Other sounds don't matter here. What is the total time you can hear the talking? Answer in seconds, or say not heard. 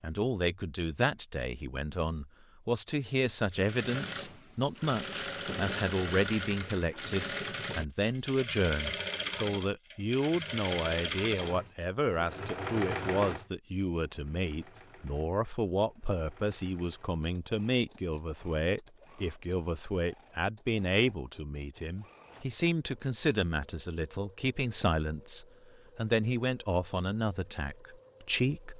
29 s.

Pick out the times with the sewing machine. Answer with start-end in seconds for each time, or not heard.
3.5-28.7.